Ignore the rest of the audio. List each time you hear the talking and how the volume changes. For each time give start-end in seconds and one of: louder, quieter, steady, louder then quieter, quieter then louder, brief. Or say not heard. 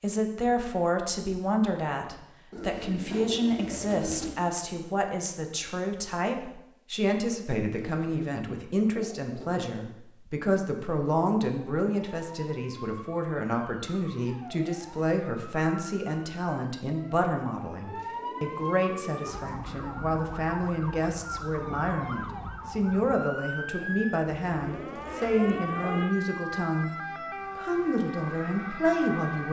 0.0-26.9 steady
27.6-29.4 brief.